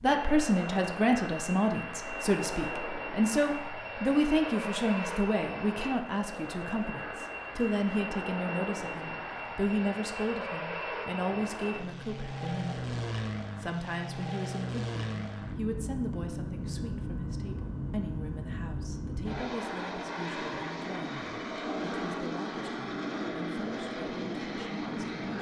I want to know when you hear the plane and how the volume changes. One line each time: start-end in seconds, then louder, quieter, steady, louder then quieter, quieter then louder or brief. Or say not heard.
0.0-25.3 steady.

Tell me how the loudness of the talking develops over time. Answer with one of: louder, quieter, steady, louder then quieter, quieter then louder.
quieter.